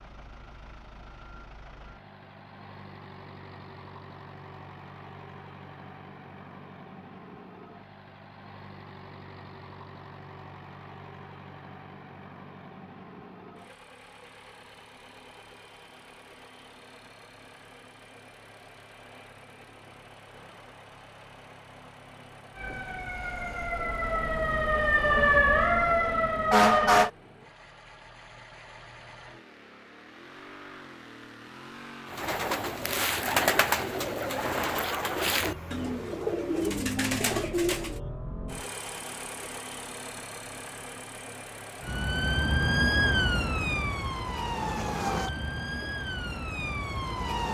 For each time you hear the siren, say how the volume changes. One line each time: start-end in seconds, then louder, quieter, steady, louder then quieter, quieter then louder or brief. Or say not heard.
22.6-27.1 louder
41.8-47.4 quieter.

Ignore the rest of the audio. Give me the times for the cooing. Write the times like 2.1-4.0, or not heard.
32.1-38.0.